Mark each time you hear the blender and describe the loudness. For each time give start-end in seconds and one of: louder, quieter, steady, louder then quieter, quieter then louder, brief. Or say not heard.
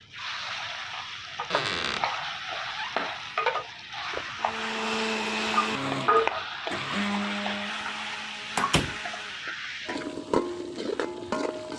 4.4-9.5 quieter.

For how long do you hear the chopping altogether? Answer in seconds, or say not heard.
not heard.